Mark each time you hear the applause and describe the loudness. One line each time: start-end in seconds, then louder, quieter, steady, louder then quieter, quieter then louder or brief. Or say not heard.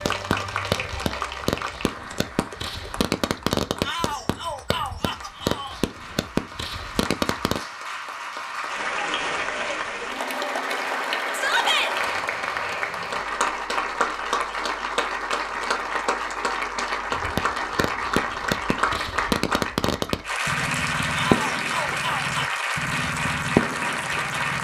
0.0-24.5 louder.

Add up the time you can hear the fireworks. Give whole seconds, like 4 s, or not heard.
15 s.